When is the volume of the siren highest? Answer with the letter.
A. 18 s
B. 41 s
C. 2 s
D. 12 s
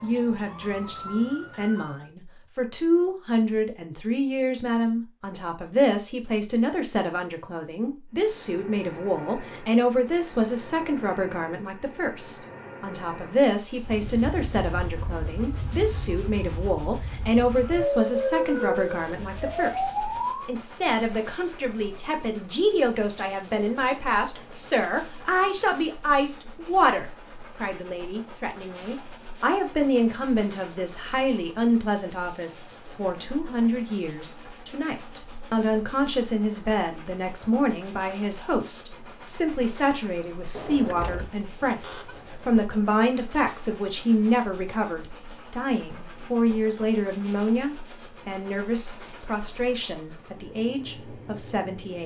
A.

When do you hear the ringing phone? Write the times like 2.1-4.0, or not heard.
not heard.